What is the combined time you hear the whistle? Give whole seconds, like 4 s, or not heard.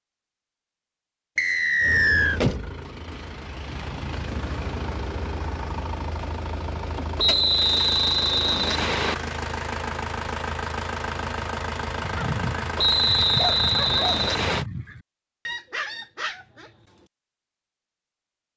5 s.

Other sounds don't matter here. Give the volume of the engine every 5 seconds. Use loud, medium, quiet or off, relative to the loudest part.
loud, loud, loud, off.